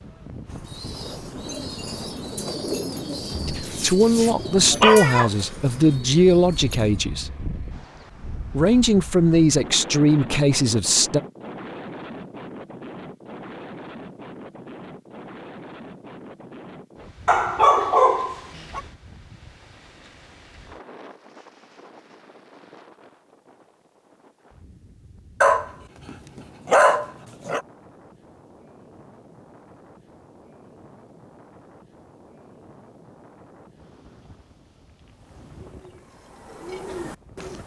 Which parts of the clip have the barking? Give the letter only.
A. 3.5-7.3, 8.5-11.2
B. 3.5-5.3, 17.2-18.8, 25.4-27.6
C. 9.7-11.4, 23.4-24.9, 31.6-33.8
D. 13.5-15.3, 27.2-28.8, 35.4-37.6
B.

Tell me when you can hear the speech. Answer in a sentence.
You can hear the speech from 3.5 to 7.3 s and from 8.5 to 11.2 s.